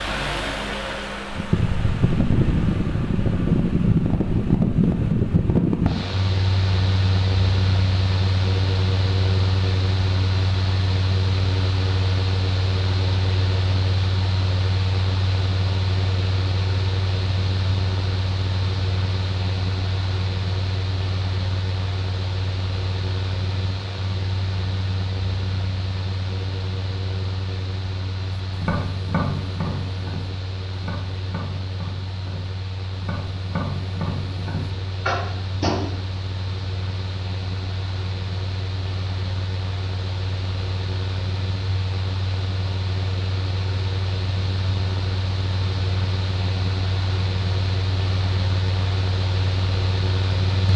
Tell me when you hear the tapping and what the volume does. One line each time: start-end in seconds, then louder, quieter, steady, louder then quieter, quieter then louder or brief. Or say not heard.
28.6-35.8 quieter then louder.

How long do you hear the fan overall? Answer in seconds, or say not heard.
51 s.